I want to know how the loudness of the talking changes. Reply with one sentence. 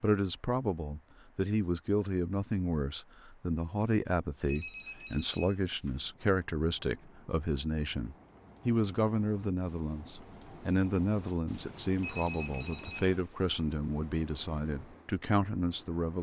The loudness of the talking stays about the same.